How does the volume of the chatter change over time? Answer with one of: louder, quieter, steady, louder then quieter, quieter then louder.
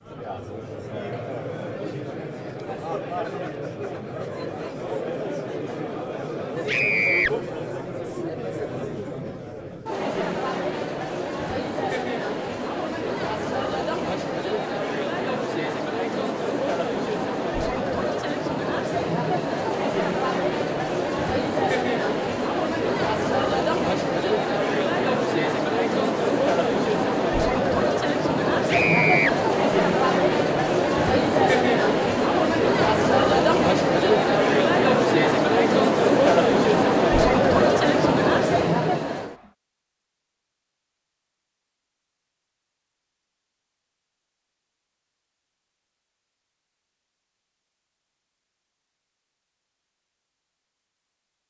louder.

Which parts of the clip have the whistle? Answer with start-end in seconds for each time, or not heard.
not heard.